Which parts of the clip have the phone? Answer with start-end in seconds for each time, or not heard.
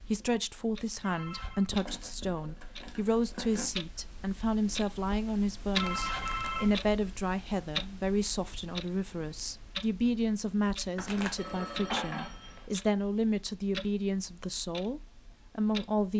1.0-1.7, 5.7-6.8, 11.3-12.6.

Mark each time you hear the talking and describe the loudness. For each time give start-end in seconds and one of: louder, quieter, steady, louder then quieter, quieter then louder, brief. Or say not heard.
0.1-16.1 steady.